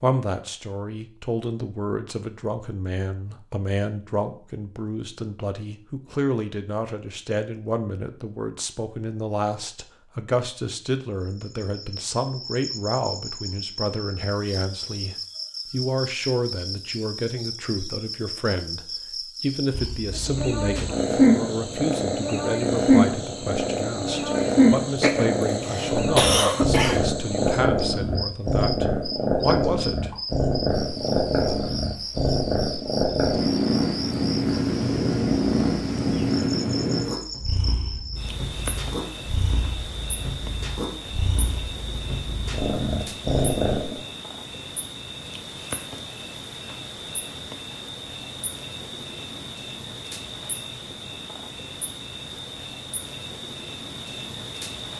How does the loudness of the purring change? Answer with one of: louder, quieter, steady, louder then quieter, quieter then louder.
quieter.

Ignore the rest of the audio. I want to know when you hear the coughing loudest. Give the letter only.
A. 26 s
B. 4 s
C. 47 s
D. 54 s
A.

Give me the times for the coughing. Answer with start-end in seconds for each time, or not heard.
25.0-27.0.